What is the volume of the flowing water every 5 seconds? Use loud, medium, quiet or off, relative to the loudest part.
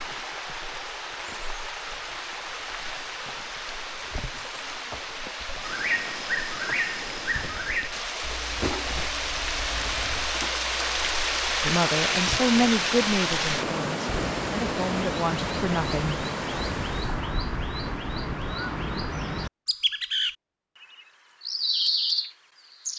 medium, medium, loud, medium, off.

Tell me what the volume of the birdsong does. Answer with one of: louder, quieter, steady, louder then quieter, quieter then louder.
quieter then louder.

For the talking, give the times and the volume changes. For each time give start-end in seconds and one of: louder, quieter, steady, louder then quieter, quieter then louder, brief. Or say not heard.
11.7-16.2 quieter then louder.